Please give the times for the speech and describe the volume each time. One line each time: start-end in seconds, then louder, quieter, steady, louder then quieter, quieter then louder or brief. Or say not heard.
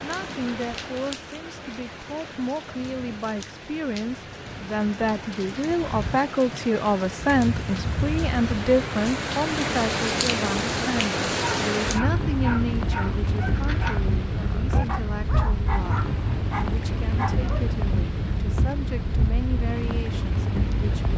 0.0-21.1 louder then quieter.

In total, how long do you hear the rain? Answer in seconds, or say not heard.
21 s.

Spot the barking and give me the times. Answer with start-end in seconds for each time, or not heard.
11.3-17.8.